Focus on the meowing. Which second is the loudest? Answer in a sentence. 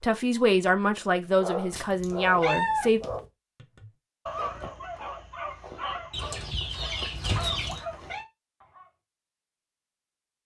The loudest moment of the meowing is at 3 seconds.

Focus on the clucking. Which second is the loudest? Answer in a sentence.
The volume of the clucking peaks at 7 seconds.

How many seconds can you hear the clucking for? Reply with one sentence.
You can hear the clucking for 2 seconds altogether.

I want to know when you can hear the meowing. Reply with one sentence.
You can hear the meowing from 1.7 to 3.2 s and from 7.5 to 8.2 s.